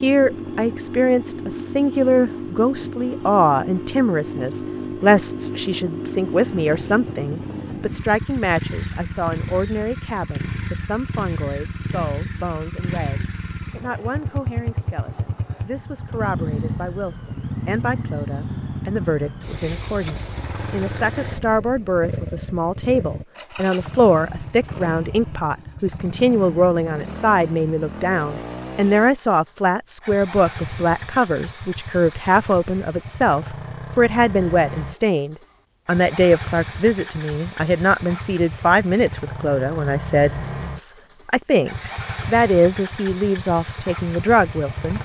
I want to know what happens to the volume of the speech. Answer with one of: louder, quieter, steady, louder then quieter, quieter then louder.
quieter then louder.